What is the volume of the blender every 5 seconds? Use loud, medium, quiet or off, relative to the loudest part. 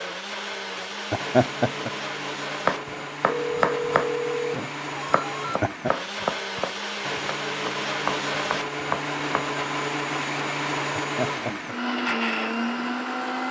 medium, loud, loud.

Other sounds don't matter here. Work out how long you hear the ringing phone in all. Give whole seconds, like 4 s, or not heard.
2 s.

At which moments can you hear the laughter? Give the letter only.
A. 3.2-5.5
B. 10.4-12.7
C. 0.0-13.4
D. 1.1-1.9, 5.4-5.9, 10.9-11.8
D.